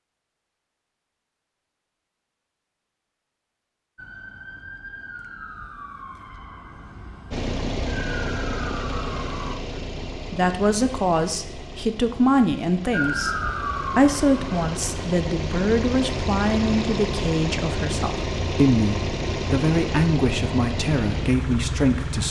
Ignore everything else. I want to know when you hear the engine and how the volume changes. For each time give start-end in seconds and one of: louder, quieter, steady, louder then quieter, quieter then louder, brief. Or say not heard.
7.3-22.2 quieter then louder.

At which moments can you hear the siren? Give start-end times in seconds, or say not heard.
4.0-9.6, 12.9-15.1.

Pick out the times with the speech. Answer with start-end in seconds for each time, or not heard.
9.8-22.2.